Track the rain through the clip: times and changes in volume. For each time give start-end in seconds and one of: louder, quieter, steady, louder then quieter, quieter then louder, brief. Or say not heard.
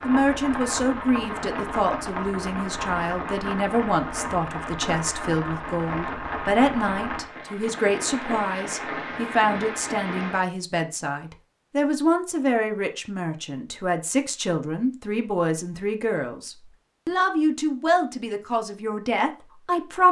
0.0-10.4 steady.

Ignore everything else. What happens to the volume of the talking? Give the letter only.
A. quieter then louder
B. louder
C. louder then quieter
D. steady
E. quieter
D.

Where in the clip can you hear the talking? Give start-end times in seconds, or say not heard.
0.0-20.0.